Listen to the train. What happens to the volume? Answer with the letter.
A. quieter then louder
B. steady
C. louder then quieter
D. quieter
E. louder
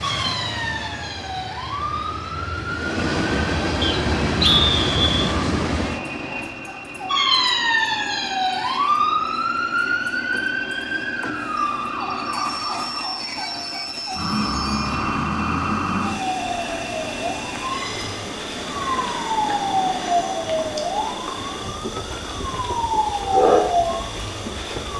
D.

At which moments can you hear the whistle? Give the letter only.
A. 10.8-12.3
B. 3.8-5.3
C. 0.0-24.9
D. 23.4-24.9
B.